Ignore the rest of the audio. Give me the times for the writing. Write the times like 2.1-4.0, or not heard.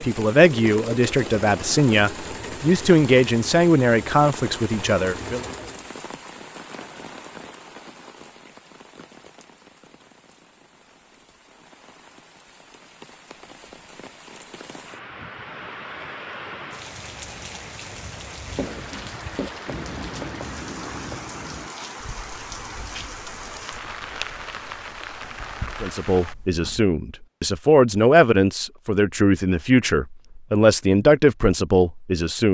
18.4-26.9.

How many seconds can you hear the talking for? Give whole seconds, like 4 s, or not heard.
12 s.